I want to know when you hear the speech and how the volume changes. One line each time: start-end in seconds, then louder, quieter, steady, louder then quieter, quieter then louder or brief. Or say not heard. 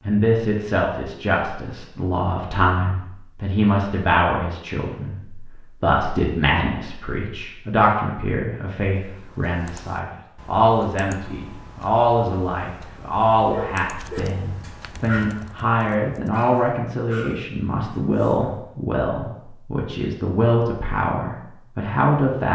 0.1-22.5 steady.